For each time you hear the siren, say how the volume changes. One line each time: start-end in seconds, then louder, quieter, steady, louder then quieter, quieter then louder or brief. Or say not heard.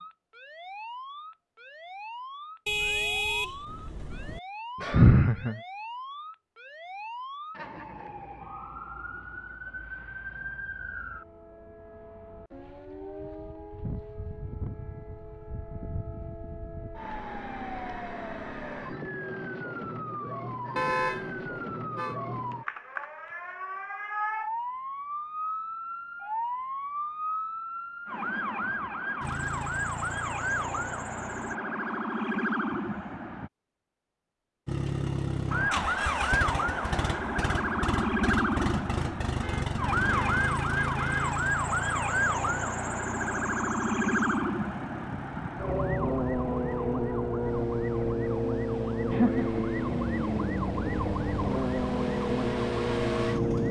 0.0-33.5 louder
35.5-53.6 steady.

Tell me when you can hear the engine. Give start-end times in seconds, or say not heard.
29.2-31.6, 34.6-53.6.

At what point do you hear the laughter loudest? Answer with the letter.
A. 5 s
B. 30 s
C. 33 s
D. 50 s
A.